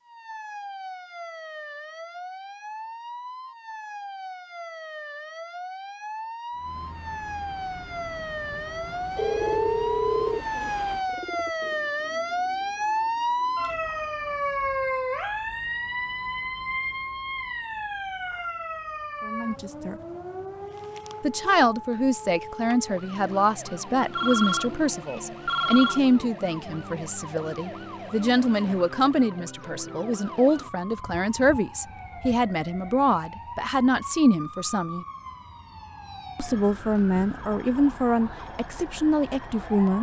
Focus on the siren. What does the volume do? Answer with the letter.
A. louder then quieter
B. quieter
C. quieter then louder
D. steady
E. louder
A.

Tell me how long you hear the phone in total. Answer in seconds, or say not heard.
3 s.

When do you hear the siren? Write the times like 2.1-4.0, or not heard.
0.1-39.9.